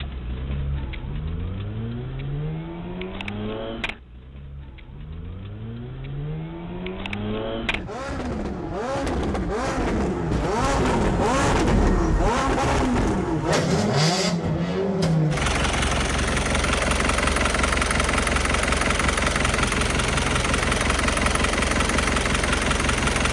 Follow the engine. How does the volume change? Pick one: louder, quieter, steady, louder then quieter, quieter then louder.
louder.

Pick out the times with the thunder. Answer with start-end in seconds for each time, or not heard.
10.3-12.3.